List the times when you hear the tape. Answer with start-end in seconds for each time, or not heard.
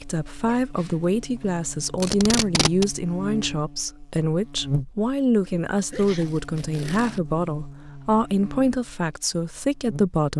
2.0-2.9, 5.9-7.2.